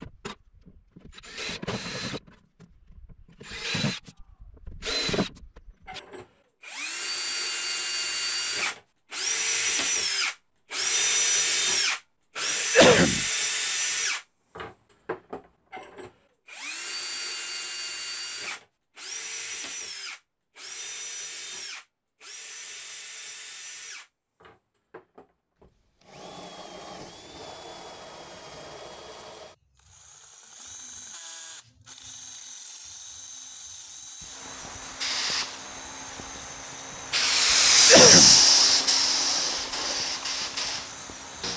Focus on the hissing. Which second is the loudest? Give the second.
38 s.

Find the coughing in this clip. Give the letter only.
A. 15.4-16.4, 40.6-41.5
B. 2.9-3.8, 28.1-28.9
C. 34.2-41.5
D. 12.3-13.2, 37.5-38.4
D.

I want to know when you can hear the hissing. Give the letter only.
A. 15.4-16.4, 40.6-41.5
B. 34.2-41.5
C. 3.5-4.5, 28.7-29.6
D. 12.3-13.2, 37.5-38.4
B.